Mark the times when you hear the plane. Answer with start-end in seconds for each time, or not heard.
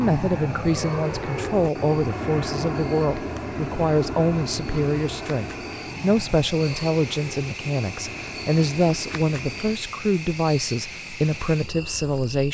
0.0-9.8.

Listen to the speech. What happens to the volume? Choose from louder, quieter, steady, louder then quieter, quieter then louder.
steady.